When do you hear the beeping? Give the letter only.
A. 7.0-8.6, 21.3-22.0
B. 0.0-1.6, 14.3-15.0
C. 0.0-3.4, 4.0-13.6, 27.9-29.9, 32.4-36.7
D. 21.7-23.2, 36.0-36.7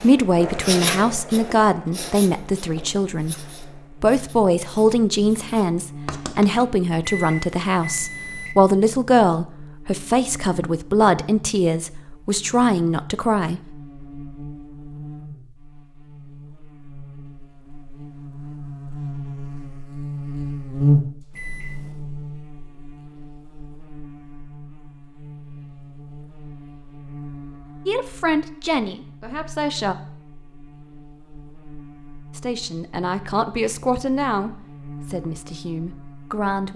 A.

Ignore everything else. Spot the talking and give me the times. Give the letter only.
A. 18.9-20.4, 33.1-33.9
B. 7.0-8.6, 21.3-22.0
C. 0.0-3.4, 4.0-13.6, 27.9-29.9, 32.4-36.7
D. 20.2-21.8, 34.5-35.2
C.